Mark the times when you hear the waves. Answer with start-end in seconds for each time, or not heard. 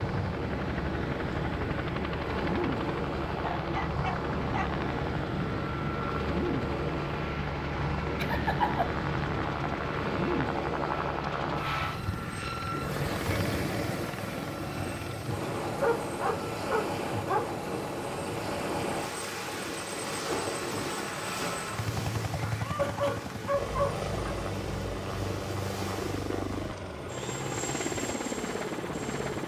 0.0-29.4.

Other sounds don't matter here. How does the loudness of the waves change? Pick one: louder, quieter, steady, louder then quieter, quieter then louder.
quieter.